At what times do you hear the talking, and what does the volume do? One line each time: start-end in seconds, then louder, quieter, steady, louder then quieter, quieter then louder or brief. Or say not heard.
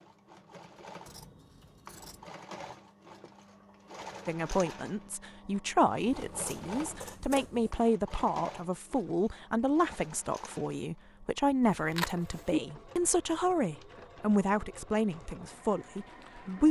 4.2-16.6 steady.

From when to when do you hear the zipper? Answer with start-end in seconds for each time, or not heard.
11.6-12.5.